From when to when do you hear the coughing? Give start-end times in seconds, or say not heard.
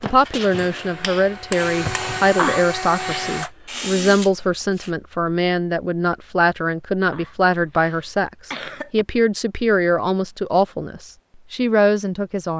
2.4-3.5, 7.1-9.1.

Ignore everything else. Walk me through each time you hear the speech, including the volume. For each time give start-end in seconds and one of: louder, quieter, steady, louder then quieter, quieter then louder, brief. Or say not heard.
0.0-12.5 steady.